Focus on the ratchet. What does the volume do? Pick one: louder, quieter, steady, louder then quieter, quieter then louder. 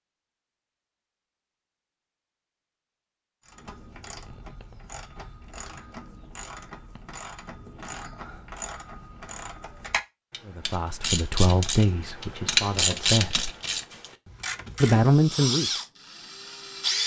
louder.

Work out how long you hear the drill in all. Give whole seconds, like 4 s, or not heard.
2 s.